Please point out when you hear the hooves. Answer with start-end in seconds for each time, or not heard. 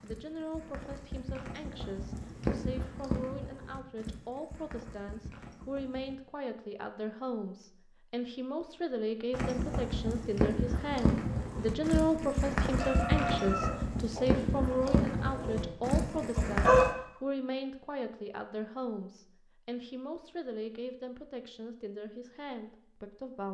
0.0-6.2, 9.3-16.9.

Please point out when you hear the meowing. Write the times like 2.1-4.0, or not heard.
not heard.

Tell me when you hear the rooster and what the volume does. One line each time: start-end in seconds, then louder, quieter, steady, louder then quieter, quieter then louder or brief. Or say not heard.
12.8-16.9 quieter.